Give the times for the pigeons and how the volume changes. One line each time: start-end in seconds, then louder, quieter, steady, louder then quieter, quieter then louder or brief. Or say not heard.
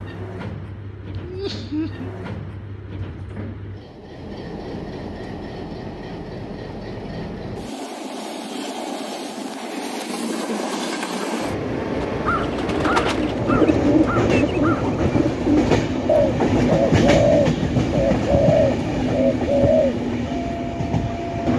11.9-19.9 steady.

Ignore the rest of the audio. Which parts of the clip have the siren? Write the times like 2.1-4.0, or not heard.
not heard.